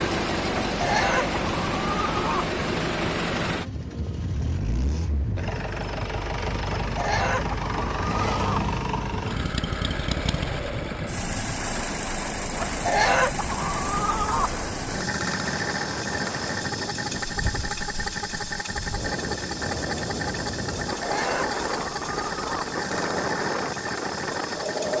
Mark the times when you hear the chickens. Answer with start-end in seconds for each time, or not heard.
0.7-2.5, 6.8-8.7, 12.6-14.6, 20.9-22.8.